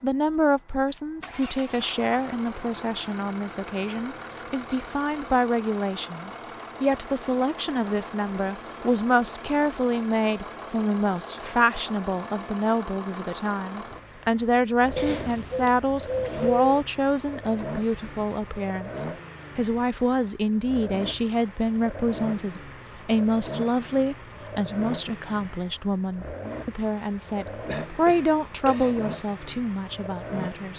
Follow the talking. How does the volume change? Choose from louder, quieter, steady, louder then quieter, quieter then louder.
steady.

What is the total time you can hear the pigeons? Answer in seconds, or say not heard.
2 s.